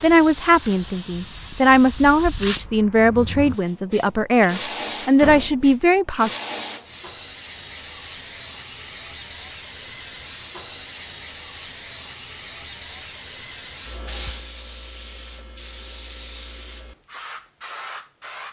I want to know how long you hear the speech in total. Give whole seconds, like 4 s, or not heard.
6 s.